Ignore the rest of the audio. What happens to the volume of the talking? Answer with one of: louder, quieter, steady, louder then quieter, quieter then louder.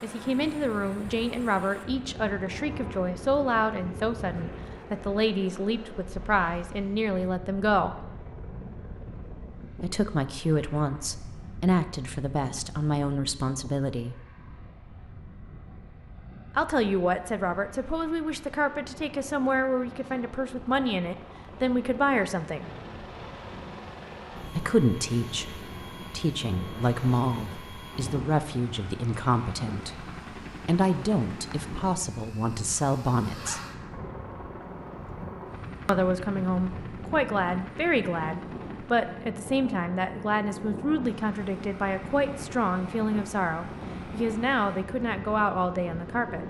steady.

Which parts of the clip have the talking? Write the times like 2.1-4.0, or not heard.
0.0-8.0, 9.8-14.2, 16.6-22.6, 24.6-33.6, 35.9-46.4.